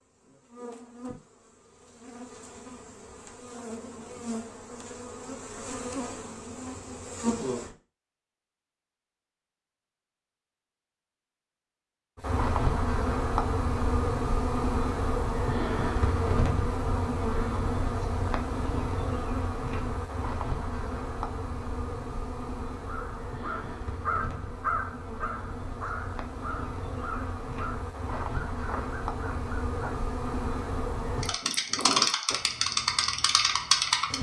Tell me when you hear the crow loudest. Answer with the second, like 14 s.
25 s.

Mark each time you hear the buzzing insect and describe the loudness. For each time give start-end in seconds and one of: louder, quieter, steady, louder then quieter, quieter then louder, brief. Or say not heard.
0.0-7.8 louder
12.2-34.1 quieter then louder.